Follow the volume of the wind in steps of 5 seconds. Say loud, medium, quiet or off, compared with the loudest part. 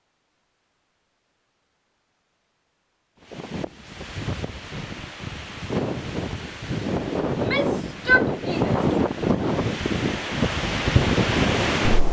quiet, loud, loud.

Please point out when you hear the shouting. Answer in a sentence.
The shouting can be heard from 7.3 to 8.8 s.